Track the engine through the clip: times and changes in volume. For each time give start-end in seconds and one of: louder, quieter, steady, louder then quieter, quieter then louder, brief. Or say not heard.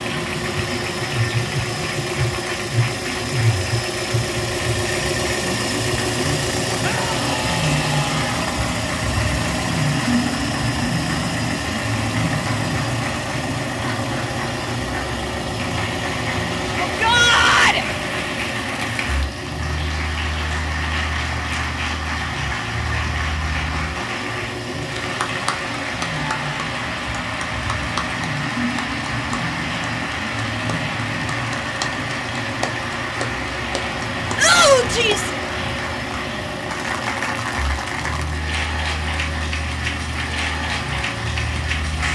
0.0-42.0 quieter.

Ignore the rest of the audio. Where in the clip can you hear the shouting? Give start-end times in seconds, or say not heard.
6.8-8.4, 16.8-17.9, 34.4-35.3.